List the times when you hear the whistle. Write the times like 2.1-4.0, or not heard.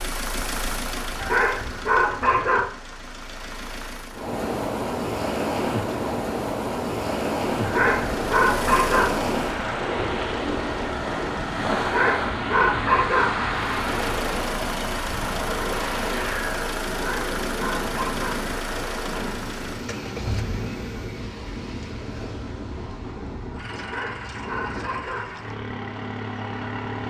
not heard.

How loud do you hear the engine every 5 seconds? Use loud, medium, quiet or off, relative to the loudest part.
loud, loud, loud, loud, medium, loud.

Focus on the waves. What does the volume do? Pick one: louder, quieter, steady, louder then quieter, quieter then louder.
quieter.